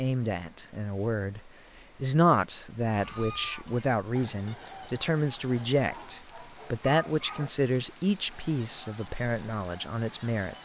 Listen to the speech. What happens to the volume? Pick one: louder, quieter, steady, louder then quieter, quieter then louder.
quieter.